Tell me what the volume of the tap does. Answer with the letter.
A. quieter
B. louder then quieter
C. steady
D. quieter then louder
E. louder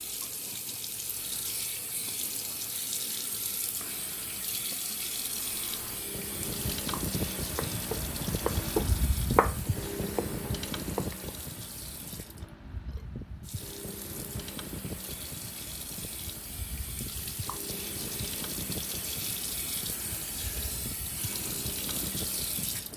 D.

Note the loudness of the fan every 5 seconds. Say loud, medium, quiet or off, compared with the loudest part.
off, loud, loud, medium, medium.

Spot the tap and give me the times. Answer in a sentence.
The tap can be heard from 0.0 to 22.9 s.